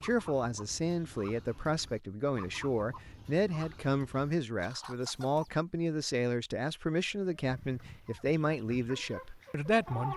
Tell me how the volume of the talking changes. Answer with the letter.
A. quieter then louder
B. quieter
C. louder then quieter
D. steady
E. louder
D.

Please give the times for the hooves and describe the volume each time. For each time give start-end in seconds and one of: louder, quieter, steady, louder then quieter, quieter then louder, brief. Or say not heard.
not heard.